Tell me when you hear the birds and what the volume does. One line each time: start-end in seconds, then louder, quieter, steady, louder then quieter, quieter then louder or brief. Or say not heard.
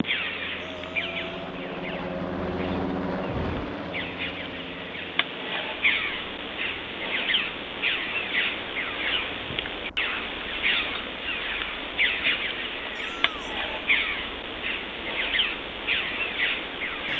0.0-17.1 louder.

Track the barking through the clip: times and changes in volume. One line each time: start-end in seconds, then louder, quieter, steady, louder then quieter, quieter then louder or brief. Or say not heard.
not heard.